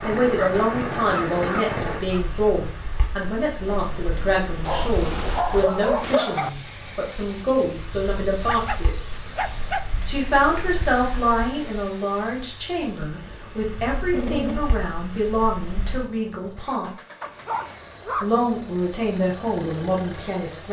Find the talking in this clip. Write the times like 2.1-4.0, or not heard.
0.0-9.0, 10.1-16.9, 18.2-20.6.